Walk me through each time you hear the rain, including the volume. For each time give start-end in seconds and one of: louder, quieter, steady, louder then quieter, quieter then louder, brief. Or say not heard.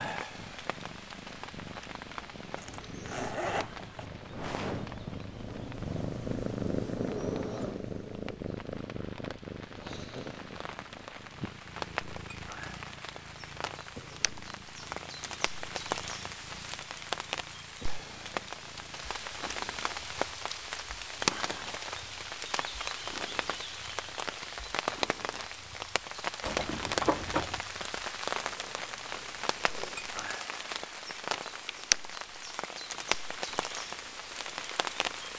0.0-35.3 louder.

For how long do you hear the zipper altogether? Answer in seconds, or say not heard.
3 s.